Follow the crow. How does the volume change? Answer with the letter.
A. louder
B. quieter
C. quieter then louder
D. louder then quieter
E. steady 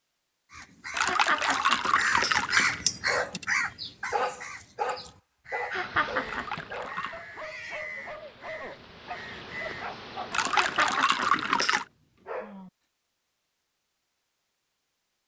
B.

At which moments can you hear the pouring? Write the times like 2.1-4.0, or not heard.
0.9-2.9, 6.2-7.2, 10.3-11.8.